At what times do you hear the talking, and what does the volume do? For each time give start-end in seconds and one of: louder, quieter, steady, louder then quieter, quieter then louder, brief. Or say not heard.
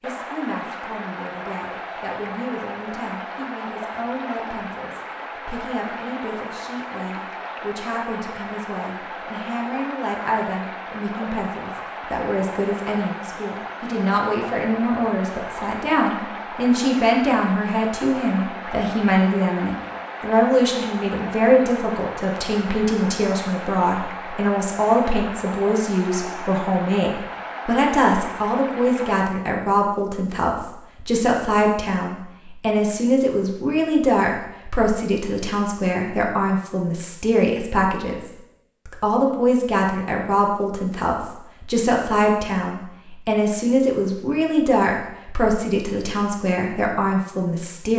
0.0-47.9 louder.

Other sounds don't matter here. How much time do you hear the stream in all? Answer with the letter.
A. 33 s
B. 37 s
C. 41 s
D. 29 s
D.